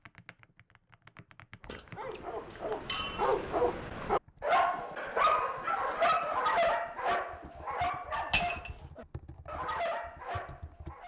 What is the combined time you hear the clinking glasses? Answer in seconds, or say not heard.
2 s.